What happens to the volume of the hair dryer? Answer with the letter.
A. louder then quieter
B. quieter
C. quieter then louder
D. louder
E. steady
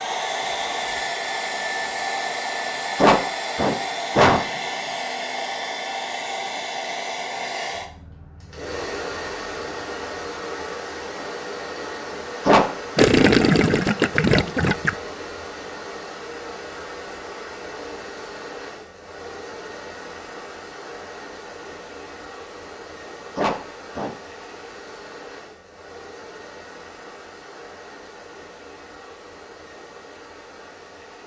B.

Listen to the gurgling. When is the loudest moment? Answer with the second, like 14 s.
13 s.